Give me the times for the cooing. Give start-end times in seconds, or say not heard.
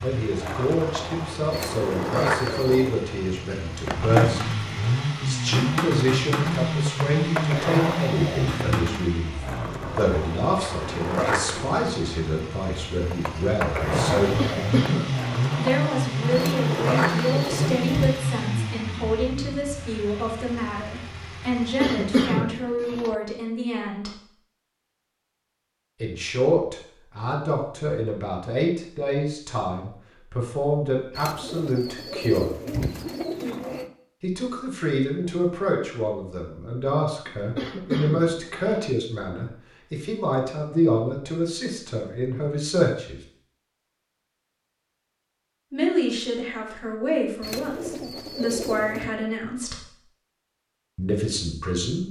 1.5-3.0, 16.4-18.2, 31.1-33.9, 47.4-49.1.